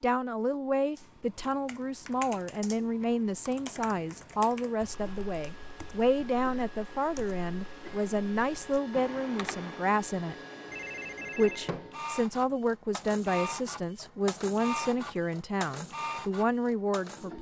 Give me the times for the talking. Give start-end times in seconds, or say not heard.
0.0-10.3, 11.3-17.3.